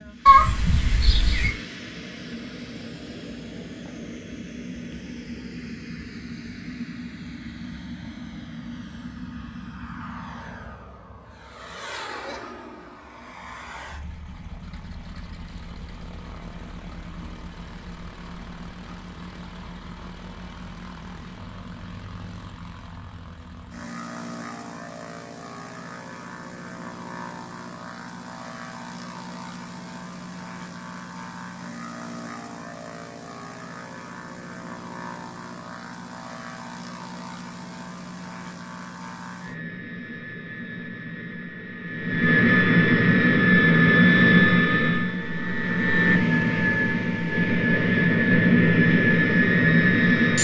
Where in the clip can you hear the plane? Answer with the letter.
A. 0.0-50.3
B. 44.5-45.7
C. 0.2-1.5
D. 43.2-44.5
A.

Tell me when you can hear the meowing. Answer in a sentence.
You can hear the meowing from 0.2 to 1.5 s.